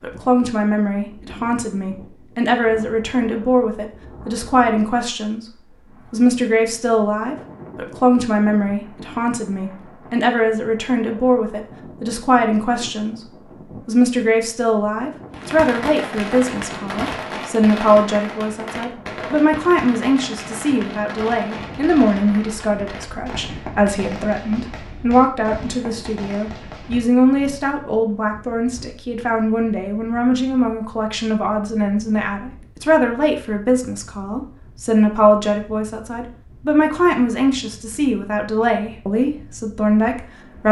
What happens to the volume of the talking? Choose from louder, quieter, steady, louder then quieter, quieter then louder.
steady.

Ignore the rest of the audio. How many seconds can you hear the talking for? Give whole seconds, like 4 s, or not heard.
39 s.